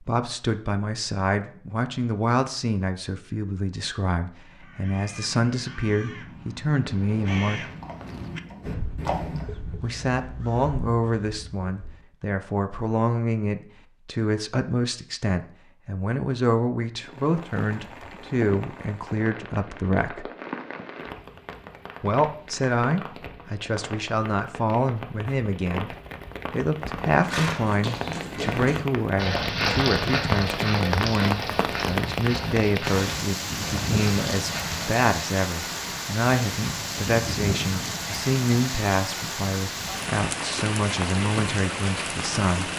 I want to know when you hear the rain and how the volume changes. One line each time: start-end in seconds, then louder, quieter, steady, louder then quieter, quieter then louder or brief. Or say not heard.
17.0-42.7 louder.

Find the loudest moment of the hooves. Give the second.
30 s.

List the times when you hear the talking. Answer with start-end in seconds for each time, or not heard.
0.0-7.7, 9.8-20.3, 22.0-42.7.